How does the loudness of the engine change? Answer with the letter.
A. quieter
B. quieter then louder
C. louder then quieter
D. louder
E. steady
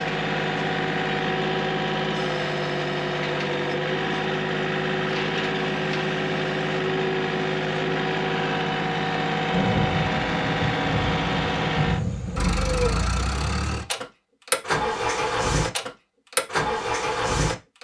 E.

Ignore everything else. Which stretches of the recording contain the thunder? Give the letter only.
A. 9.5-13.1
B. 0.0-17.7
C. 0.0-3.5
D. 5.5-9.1
A.